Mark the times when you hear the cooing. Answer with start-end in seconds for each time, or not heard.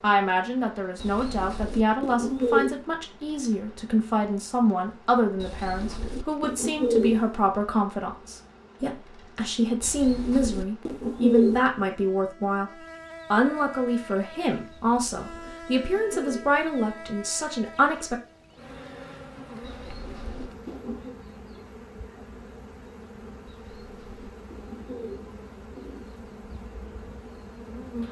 0.9-2.8, 5.4-7.2, 9.8-11.7, 14.7-16.6, 19.6-21.1, 23.4-26.1.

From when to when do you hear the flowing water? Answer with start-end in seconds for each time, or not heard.
not heard.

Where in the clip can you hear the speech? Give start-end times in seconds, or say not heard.
0.0-12.7, 13.3-18.2.